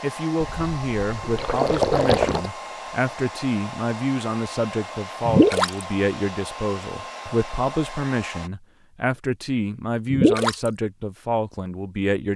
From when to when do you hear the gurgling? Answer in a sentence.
You can hear the gurgling from 0.4 to 2.5 s, from 5.2 to 5.8 s and from 10.1 to 10.7 s.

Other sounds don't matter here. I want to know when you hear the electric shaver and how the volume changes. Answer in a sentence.
The electric shaver can't be heard in this clip.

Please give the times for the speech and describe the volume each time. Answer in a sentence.
The speech can be heard from 0.0 to 12.3 s, at a steady volume.